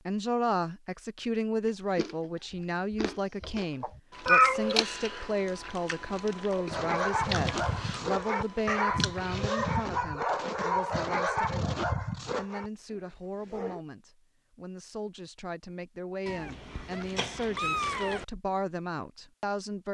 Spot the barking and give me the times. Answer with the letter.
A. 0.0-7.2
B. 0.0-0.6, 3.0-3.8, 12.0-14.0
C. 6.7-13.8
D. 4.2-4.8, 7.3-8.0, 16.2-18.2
C.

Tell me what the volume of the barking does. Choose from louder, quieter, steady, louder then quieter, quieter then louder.
quieter.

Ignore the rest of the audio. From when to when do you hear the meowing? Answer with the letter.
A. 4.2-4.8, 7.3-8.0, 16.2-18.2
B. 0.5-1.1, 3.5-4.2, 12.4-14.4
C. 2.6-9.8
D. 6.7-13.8
A.